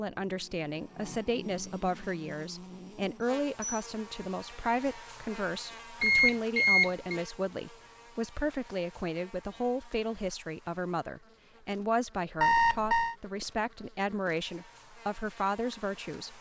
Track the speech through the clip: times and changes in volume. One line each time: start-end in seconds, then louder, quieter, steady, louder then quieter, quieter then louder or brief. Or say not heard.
0.0-16.3 steady.